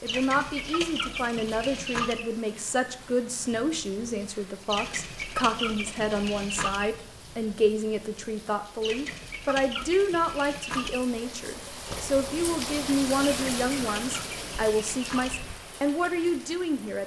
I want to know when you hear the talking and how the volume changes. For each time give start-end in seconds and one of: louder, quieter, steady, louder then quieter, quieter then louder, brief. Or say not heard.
0.0-17.0 steady.